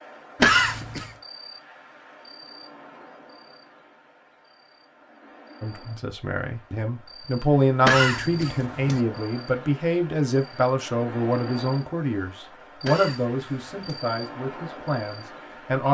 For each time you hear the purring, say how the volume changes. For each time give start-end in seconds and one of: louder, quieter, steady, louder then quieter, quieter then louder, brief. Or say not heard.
not heard.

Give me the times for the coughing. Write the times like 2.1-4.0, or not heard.
0.4-1.1, 7.8-9.0, 12.8-14.0.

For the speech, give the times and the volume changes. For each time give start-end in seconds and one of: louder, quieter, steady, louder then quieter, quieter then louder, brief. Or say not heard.
5.6-15.9 quieter.